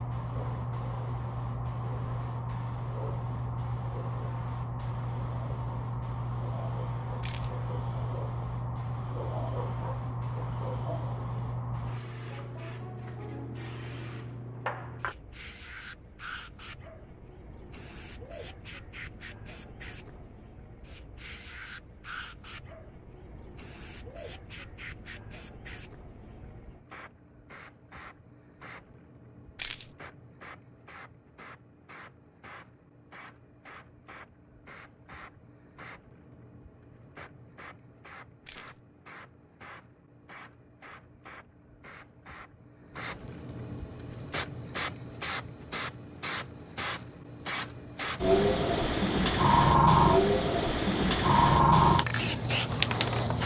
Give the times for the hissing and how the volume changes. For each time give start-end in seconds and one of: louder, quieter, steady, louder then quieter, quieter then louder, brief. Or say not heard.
0.0-53.4 quieter then louder.